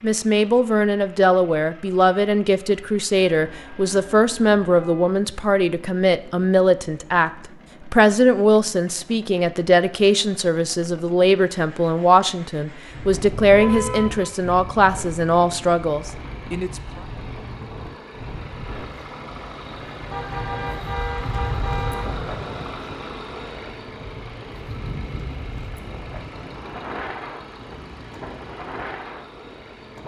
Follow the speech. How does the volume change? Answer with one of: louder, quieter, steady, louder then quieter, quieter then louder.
steady.